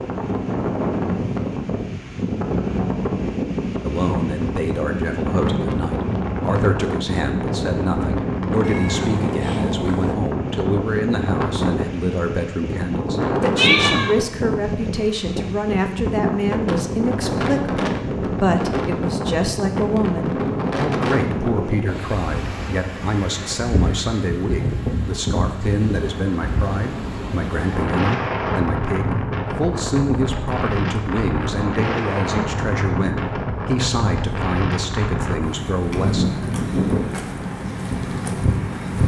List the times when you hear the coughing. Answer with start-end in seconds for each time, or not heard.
not heard.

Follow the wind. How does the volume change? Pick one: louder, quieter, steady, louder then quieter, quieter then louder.
steady.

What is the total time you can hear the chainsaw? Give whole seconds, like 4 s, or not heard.
not heard.